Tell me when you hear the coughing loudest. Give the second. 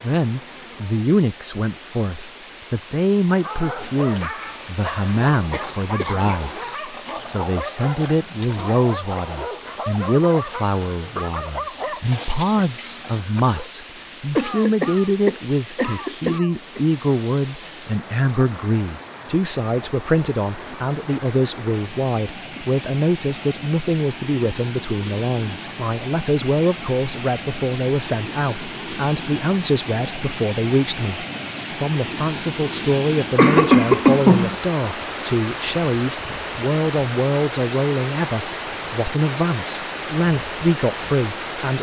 34 s.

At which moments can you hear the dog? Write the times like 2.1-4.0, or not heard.
3.2-13.7.